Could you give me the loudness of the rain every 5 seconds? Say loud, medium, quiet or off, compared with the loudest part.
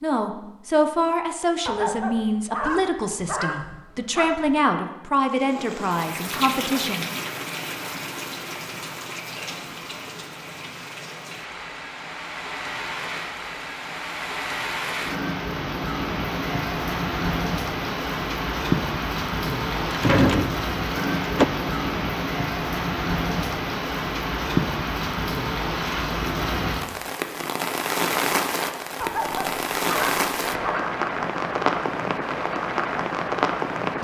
off, medium, medium, loud, loud, loud, loud.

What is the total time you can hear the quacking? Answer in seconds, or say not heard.
not heard.